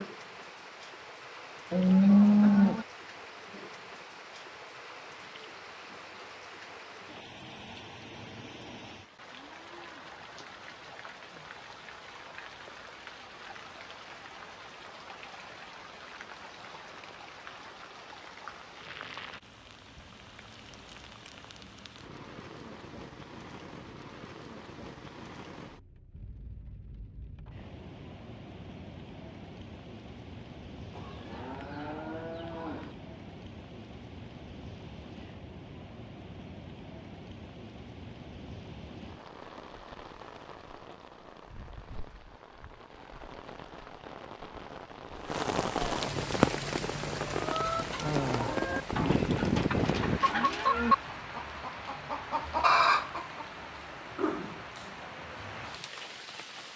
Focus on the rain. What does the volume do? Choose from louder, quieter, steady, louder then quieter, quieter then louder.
louder.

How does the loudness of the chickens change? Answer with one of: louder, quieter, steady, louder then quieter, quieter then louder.
louder.